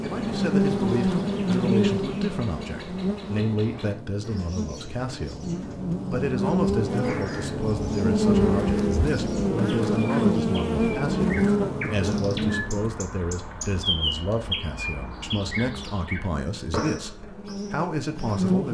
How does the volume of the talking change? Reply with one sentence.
The volume of the talking stays about the same.